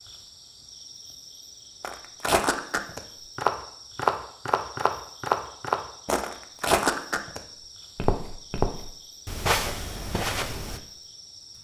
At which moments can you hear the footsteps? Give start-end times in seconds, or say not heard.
1.8-10.8.